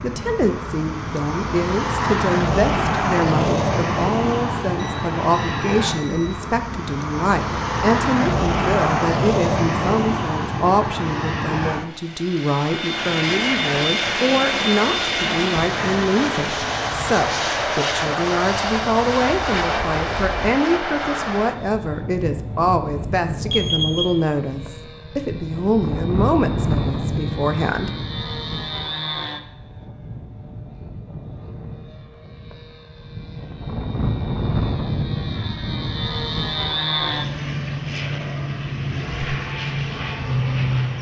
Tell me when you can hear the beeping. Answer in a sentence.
You can hear the beeping from 4.8 to 6.3 s and from 23.4 to 24.1 s.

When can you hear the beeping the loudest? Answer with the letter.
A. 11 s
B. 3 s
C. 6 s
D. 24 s
D.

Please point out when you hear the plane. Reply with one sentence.
You can hear the plane from 0.0 to 40.9 s.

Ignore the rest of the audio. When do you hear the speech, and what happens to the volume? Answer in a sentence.
The speech can be heard from 0.0 to 27.9 s, at a steady volume.